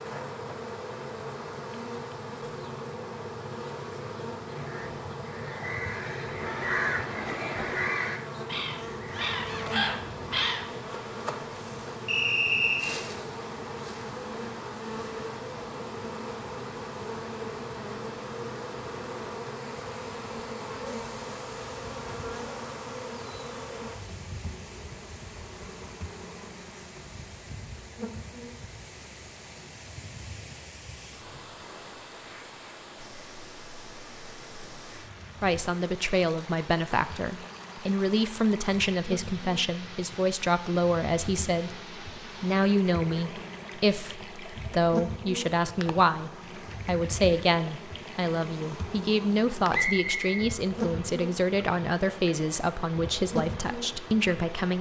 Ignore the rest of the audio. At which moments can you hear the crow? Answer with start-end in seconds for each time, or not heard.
4.5-10.8.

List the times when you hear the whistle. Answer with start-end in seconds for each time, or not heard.
12.1-12.9, 49.7-50.4.